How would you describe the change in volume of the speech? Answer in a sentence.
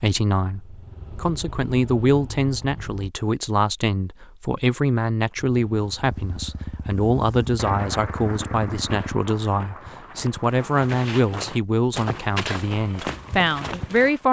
The volume of the speech stays about the same.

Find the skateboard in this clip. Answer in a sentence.
You can't hear the skateboard here.